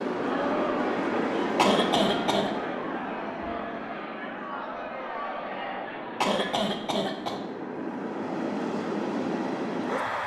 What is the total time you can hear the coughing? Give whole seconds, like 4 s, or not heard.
2 s.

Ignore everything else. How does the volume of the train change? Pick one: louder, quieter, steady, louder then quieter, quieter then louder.
quieter then louder.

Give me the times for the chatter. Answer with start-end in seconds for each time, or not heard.
0.0-6.7.